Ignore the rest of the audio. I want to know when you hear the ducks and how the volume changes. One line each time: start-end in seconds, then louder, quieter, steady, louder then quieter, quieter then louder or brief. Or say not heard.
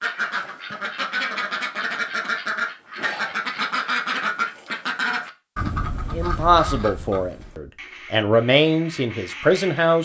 0.0-10.0 quieter.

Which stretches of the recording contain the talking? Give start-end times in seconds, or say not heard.
6.2-10.0.